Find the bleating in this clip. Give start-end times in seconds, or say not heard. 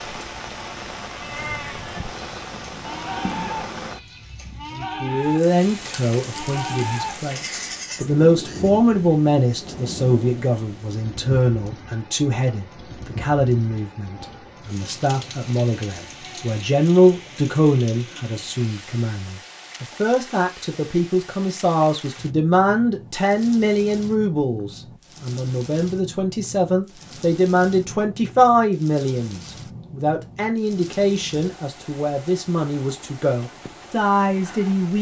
1.0-8.8.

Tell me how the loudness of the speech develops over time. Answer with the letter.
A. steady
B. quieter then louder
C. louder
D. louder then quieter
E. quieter
A.